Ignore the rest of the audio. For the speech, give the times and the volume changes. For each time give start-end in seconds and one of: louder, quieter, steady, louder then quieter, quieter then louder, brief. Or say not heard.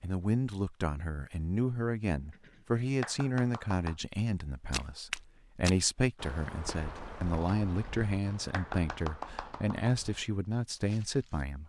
0.0-11.6 steady.